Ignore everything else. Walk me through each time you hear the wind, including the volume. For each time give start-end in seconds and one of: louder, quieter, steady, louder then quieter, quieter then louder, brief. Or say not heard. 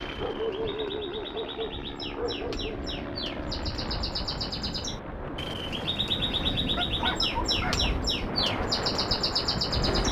3.6-10.0 louder.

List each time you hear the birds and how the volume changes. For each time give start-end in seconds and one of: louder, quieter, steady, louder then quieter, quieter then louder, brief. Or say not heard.
0.0-10.0 louder.